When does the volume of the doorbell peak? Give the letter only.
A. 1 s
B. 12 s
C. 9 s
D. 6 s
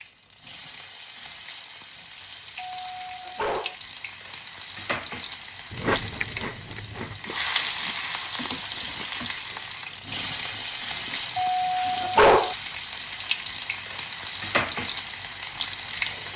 B.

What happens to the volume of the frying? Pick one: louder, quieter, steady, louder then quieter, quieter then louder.
louder.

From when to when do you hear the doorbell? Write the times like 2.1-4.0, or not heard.
2.8-3.8, 11.3-12.6.